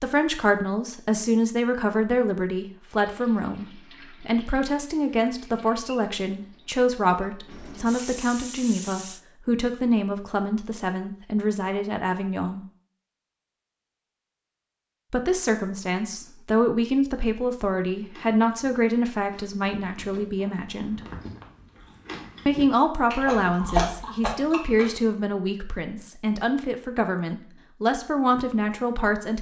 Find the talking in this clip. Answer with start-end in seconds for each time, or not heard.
0.0-12.6, 15.1-21.0, 22.4-29.3.